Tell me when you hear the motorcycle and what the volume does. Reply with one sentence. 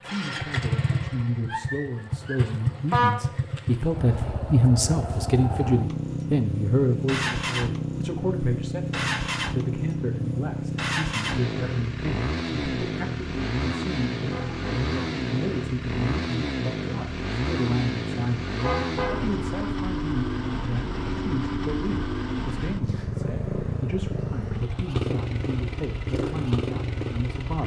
You can hear the motorcycle from 0.0 to 27.6 s, at a steady volume.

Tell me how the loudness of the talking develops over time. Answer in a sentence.
The volume of the talking goes down.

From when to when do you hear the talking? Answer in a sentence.
You can hear the talking from 0.0 to 27.6 s.